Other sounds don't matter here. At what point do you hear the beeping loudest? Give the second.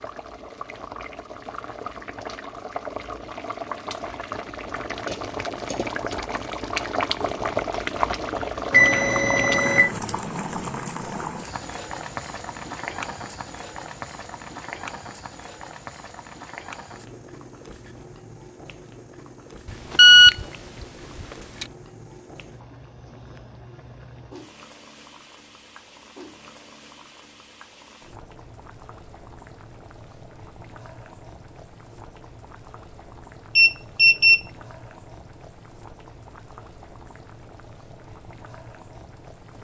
20 s.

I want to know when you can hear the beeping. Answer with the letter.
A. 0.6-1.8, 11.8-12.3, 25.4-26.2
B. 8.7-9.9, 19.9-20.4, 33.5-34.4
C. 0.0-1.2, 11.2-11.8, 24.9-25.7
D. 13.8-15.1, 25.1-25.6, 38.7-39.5
B.